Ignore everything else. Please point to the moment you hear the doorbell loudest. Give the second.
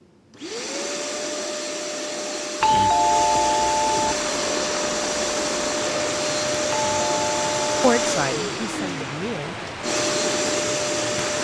3 s.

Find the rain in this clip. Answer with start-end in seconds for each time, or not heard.
4.0-11.3.